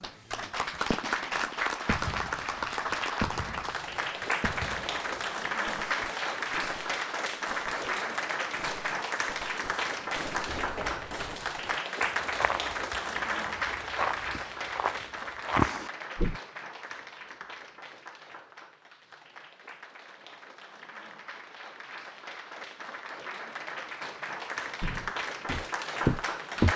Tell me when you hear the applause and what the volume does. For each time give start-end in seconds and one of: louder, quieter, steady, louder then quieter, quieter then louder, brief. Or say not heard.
0.0-26.7 quieter then louder.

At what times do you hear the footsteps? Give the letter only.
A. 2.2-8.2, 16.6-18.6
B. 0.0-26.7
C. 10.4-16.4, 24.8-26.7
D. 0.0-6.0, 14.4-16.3
C.